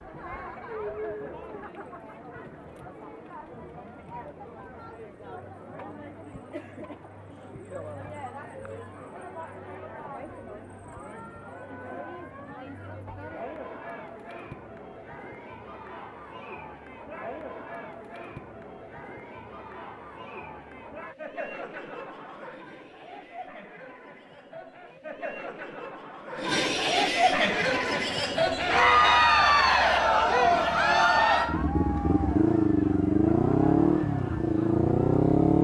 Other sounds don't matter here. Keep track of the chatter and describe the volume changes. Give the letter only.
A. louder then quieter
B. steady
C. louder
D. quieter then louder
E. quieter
C.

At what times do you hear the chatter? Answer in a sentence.
The chatter can be heard from 0.0 to 35.2 s.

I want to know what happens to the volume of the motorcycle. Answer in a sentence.
The loudness of the motorcycle goes up.